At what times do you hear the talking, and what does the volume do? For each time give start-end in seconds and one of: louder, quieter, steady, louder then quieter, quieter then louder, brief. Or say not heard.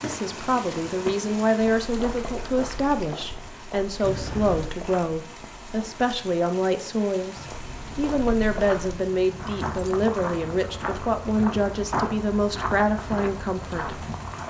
0.0-14.0 steady.